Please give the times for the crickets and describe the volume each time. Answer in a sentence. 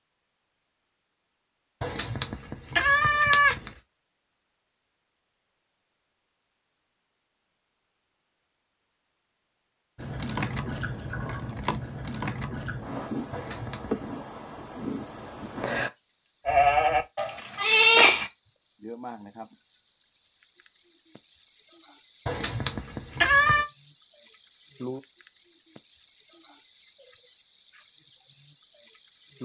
You can hear the crickets from 9.9 to 29.4 s, getting louder.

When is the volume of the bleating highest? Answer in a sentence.
The volume of the bleating peaks at 18 seconds.